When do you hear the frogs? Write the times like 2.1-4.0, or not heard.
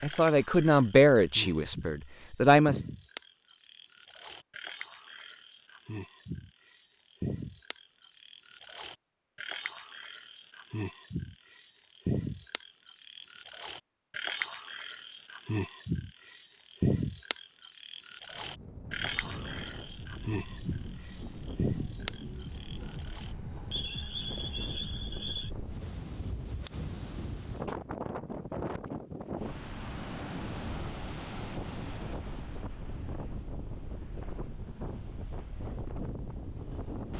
0.0-25.5.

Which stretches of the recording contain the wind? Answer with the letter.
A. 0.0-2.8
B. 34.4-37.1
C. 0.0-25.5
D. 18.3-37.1
D.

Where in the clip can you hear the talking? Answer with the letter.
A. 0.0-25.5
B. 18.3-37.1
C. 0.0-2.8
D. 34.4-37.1
C.